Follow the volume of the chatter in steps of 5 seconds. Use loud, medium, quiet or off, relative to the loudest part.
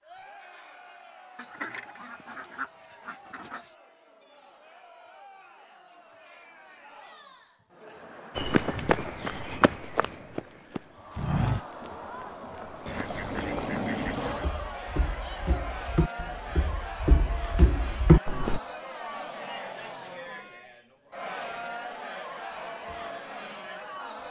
quiet, medium, loud, loud, loud.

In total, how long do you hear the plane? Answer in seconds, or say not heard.
not heard.